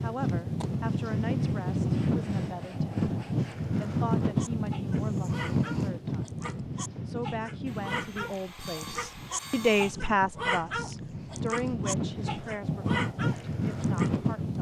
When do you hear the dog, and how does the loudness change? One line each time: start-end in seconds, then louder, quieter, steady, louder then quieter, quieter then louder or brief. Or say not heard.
4.2-14.2 louder.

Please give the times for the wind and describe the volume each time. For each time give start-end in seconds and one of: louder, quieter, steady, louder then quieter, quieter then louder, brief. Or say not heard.
0.0-14.5 quieter then louder.